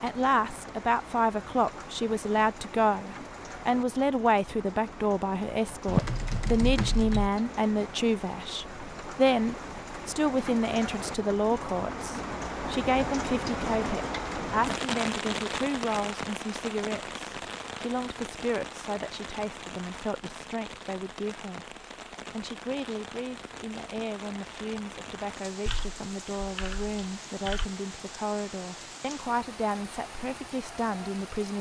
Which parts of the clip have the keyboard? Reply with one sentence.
The keyboard can be heard from 5.8 to 7.3 s and from 25.6 to 27.6 s.